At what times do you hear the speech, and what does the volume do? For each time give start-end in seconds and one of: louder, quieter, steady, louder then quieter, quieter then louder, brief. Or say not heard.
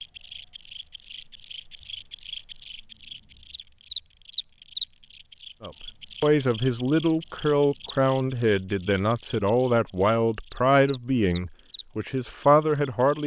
5.6-13.2 steady.